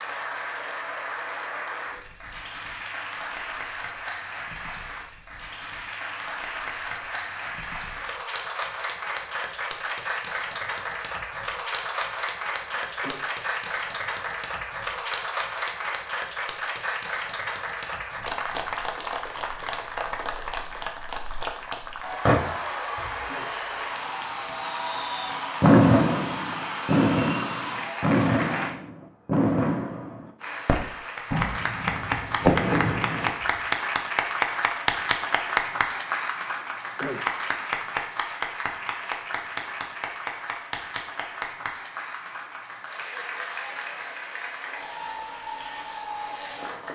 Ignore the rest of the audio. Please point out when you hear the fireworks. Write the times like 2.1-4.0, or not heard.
22.2-33.6.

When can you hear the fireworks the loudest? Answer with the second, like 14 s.
26 s.